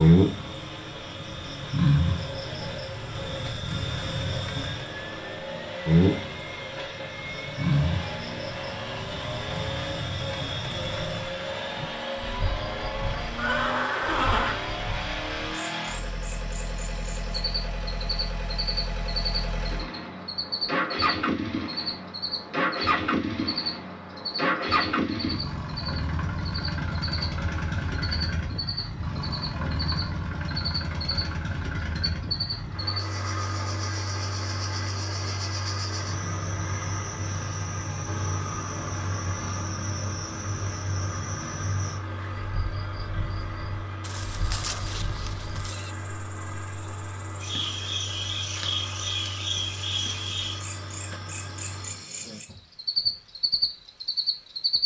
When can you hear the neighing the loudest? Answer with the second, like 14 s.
14 s.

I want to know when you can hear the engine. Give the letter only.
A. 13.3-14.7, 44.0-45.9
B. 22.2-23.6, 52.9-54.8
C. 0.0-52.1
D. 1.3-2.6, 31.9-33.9
C.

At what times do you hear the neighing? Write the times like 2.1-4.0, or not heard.
13.3-14.7, 44.0-45.9.